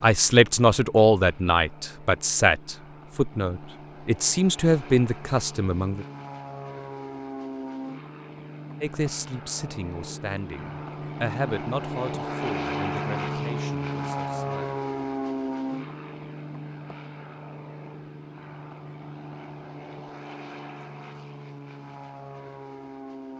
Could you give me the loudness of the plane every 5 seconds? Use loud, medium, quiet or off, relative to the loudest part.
quiet, medium, loud, medium, medium.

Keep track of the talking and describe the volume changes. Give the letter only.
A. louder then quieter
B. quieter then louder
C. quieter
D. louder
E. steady
C.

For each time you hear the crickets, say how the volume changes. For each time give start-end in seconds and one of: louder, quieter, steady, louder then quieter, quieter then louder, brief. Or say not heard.
not heard.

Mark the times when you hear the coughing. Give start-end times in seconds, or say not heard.
not heard.